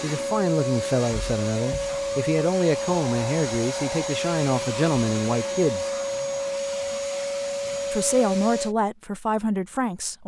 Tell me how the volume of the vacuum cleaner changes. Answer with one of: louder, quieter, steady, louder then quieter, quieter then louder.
steady.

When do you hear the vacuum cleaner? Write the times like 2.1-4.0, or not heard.
0.0-8.8.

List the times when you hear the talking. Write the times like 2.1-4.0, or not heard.
0.0-6.0, 7.9-10.2.